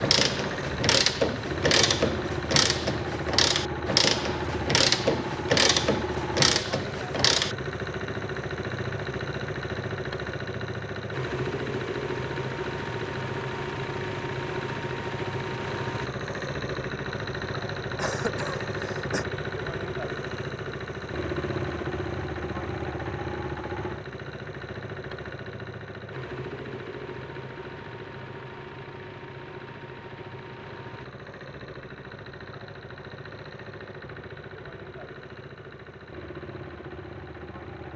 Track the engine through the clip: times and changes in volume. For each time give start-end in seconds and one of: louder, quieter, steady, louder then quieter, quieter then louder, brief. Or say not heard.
0.0-37.9 quieter.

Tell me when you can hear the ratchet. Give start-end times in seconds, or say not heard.
0.0-7.5.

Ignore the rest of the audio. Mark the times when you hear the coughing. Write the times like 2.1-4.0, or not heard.
17.9-19.2.